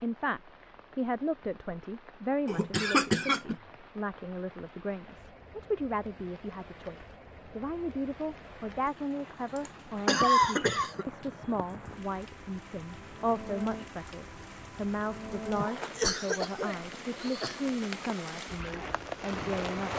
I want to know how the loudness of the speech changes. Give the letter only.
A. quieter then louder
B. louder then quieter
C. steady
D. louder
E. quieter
C.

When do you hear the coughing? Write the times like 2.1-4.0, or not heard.
2.5-3.5, 9.6-11.1, 15.9-17.6.